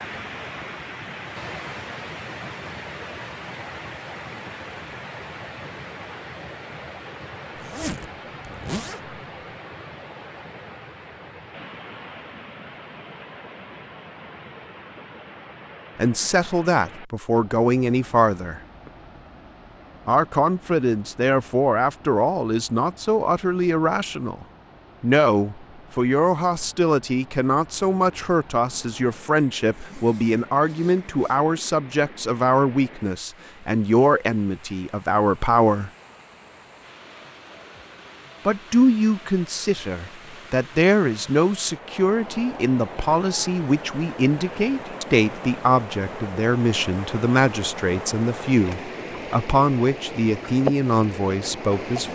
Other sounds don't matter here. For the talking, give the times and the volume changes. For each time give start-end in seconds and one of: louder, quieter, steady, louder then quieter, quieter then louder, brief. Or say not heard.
15.9-18.6 brief
20.1-35.9 steady
38.5-52.1 steady.